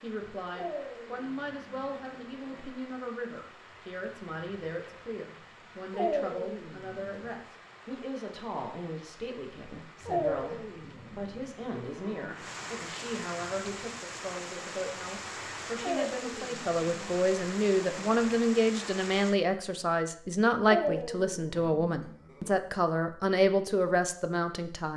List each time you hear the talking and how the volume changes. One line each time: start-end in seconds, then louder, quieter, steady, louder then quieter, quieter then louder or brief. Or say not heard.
0.0-24.9 louder.